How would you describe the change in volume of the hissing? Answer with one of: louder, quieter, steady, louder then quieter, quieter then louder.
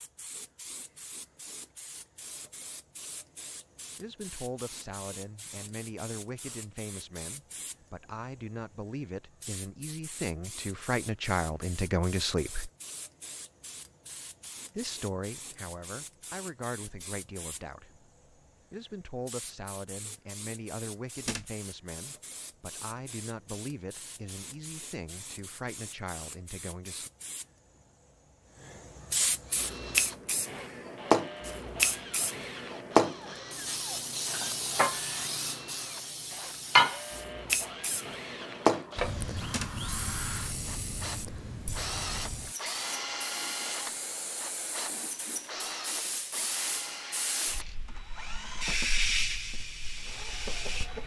louder then quieter.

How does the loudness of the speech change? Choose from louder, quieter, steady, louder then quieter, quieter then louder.
louder then quieter.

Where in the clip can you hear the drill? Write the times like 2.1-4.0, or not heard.
29.4-51.0.